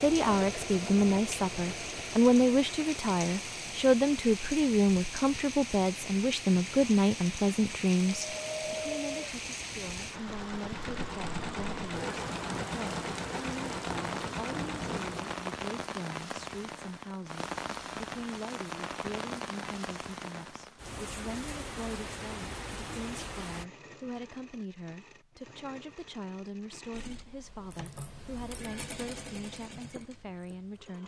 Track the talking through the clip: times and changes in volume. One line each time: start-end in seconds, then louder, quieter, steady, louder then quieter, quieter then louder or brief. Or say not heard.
0.0-31.0 quieter.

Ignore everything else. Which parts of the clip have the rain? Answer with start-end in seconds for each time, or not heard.
0.0-23.6.